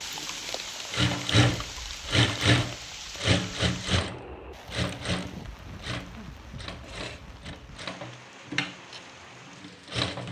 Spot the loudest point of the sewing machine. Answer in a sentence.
The volume of the sewing machine peaks at 2 seconds.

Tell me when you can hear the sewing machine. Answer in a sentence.
You can hear the sewing machine from 0.8 to 10.2 s.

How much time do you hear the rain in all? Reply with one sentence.
You can hear the rain for 10 seconds altogether.